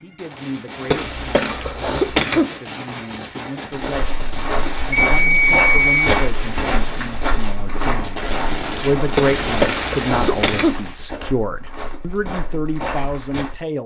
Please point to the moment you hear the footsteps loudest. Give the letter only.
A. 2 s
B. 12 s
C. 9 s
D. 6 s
D.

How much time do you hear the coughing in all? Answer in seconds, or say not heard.
3 s.